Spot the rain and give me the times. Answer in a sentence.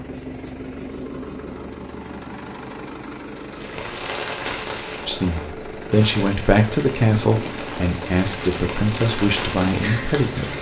The rain can be heard from 3.5 to 10.5 s.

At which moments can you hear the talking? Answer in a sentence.
The talking can be heard from 5.0 to 10.5 s.